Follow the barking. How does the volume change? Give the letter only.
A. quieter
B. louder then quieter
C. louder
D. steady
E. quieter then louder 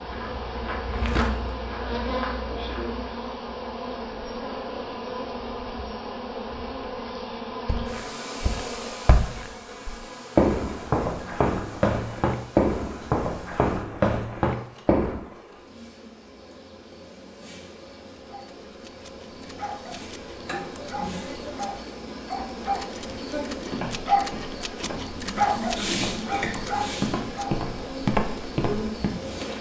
B.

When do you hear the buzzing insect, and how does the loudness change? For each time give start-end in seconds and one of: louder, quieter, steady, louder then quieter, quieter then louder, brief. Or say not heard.
0.0-29.5 quieter then louder.